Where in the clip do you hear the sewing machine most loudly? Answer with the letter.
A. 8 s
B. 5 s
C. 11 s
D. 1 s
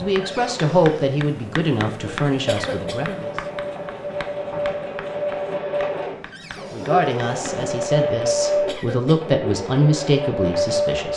A.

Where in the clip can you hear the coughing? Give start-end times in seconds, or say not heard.
2.5-3.2, 8.7-9.4.